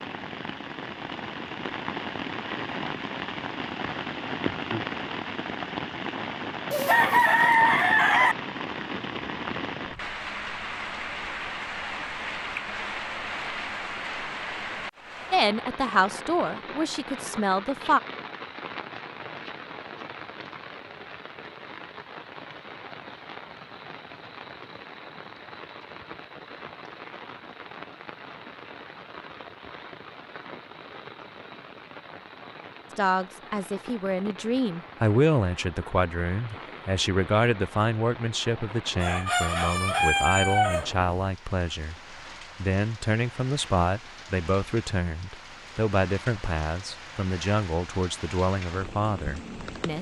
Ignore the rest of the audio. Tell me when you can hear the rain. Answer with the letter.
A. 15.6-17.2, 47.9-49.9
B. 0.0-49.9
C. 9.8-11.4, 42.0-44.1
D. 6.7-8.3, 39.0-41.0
B.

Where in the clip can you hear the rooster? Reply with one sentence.
The rooster can be heard from 6.7 to 8.3 s and from 39.0 to 41.0 s.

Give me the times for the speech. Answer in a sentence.
You can hear the speech from 15.3 to 18.0 s and from 33.0 to 49.9 s.